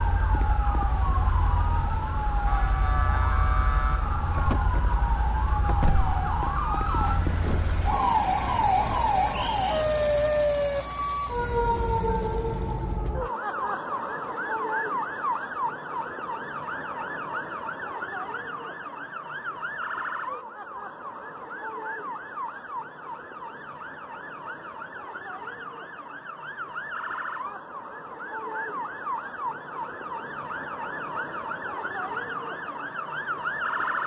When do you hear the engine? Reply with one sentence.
The engine can be heard from 6.8 to 13.2 s.